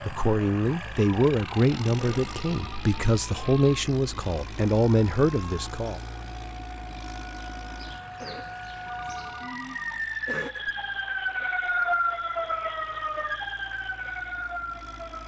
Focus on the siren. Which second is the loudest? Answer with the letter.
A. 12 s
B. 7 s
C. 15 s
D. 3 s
A.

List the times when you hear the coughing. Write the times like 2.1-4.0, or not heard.
1.9-2.4, 8.2-8.6, 10.2-10.7.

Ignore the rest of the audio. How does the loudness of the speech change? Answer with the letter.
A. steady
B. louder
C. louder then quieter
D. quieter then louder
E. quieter
A.